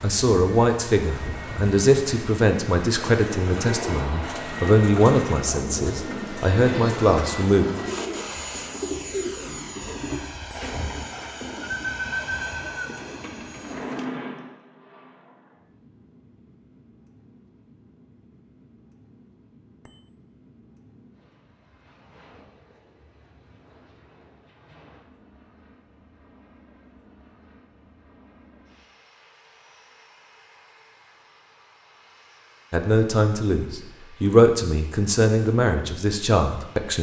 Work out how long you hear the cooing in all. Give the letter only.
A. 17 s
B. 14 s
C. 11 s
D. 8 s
C.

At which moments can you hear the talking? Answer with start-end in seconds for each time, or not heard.
0.0-7.7, 32.7-36.9.